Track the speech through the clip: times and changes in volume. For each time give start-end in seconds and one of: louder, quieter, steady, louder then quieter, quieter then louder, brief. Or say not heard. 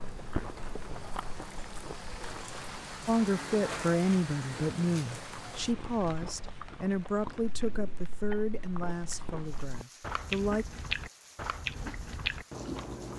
3.0-10.7 quieter.